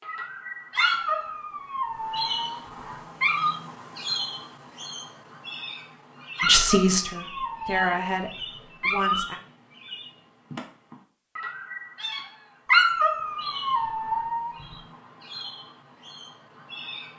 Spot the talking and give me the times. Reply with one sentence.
You can hear the talking from 6.4 to 9.4 s.